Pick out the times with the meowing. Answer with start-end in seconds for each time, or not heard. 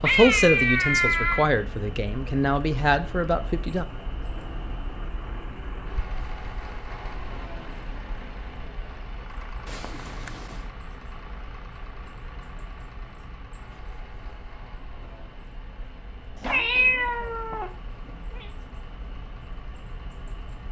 0.0-1.4, 9.7-10.7, 16.4-18.4.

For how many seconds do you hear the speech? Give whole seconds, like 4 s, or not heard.
4 s.